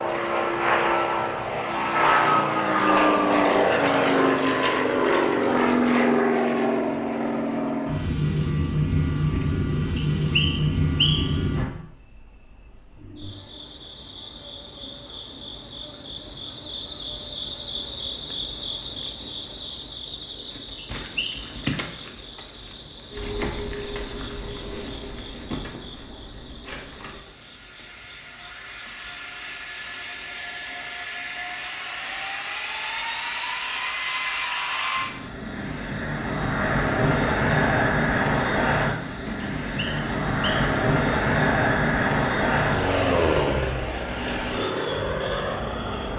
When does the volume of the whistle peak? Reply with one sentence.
The volume of the whistle peaks at 11 seconds.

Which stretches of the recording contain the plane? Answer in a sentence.
You can hear the plane from 0.0 to 11.7 s and from 23.1 to 46.1 s.